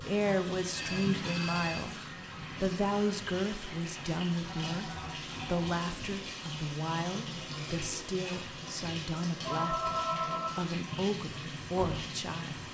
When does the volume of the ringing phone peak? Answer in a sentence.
The volume of the ringing phone peaks at 10 seconds.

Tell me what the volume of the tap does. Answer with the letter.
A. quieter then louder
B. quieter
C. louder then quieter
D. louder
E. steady
E.